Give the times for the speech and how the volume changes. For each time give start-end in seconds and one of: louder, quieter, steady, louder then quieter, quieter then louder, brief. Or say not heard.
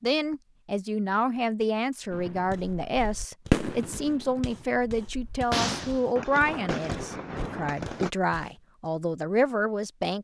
0.0-10.1 steady.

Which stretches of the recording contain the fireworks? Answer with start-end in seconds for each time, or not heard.
2.1-8.1.